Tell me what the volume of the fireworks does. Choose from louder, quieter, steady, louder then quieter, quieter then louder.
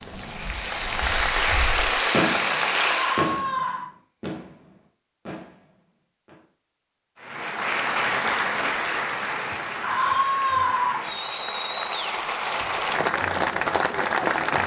louder then quieter.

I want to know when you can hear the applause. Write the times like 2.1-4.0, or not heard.
0.0-3.5, 7.2-14.6.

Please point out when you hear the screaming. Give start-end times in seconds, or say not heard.
3.0-3.9, 9.8-11.1.